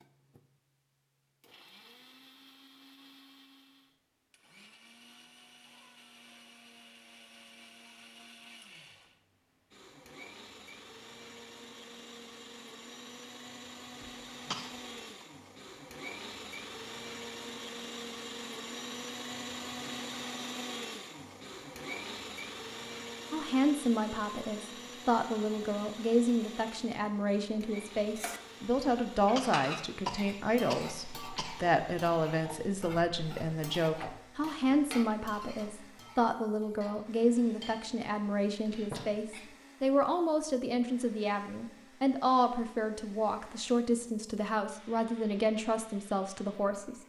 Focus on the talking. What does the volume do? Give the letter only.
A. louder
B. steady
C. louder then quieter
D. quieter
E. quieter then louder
B.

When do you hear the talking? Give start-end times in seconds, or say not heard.
23.3-47.0.